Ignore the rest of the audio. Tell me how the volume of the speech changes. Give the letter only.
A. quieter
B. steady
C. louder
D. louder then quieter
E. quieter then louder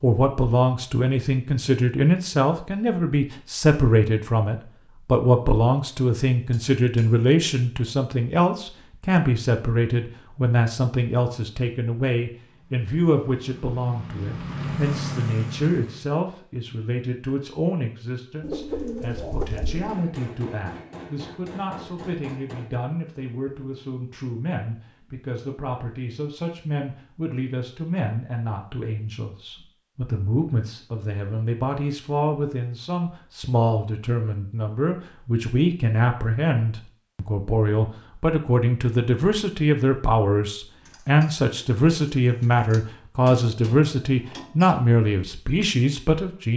E.